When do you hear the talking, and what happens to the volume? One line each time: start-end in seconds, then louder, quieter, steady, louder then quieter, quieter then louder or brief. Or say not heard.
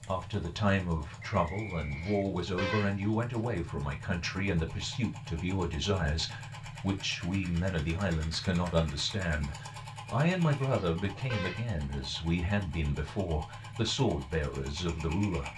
0.0-15.5 steady.